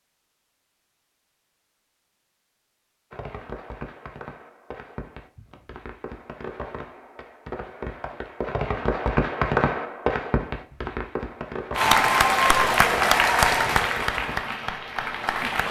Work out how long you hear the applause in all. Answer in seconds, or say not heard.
4 s.